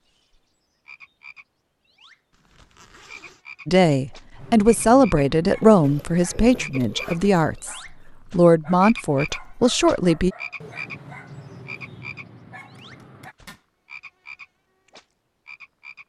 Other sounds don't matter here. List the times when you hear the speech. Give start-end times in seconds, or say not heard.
3.6-10.3.